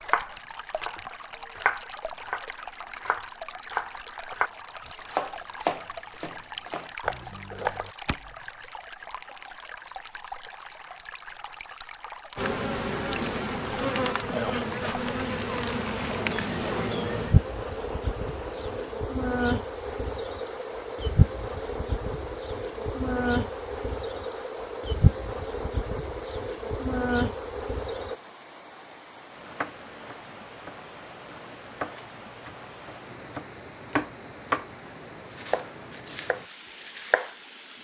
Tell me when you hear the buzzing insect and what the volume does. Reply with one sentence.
The buzzing insect can be heard from 12.3 to 28.1 s, at a steady volume.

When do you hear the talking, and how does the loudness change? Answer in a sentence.
The talking can't be heard in this clip.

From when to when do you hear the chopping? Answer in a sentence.
You can hear the chopping from 0.0 to 8.3 s, from 29.6 to 34.6 s and from 35.4 to 37.3 s.